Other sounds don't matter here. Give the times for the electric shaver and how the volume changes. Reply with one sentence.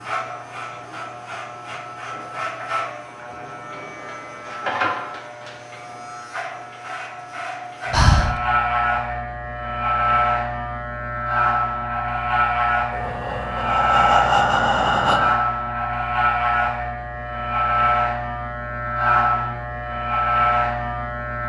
The electric shaver can be heard from 0.0 to 21.4 s, getting louder.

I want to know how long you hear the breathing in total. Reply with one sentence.
The breathing can be heard for 3 seconds in total.